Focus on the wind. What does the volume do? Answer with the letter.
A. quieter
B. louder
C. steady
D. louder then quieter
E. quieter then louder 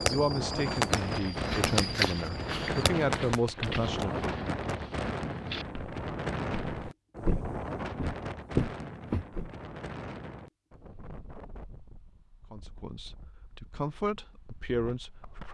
A.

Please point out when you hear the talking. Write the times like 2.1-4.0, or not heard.
0.1-4.3, 12.5-15.4.